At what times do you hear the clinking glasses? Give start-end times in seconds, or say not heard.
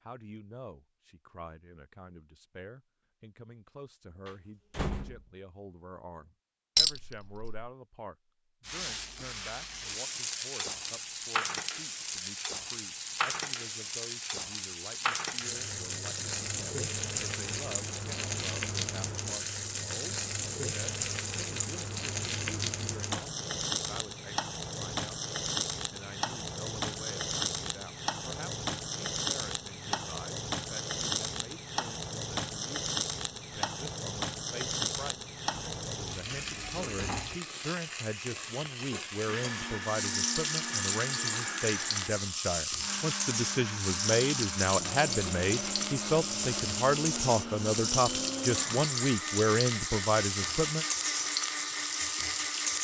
6.8-7.7.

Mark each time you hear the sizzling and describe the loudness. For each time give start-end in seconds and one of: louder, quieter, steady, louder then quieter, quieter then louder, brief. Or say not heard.
8.7-52.7 steady.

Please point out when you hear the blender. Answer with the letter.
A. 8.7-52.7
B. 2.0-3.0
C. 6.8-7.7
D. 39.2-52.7
D.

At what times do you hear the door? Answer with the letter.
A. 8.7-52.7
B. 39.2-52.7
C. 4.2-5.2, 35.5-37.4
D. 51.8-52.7
C.